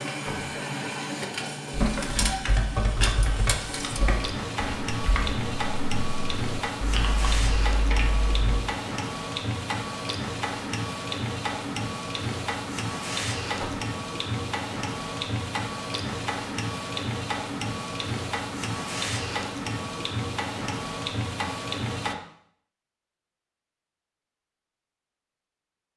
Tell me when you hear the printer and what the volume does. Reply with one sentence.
The printer can be heard from 0.0 to 22.1 s, at a steady volume.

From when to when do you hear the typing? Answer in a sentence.
The typing can be heard from 1.7 to 8.6 s.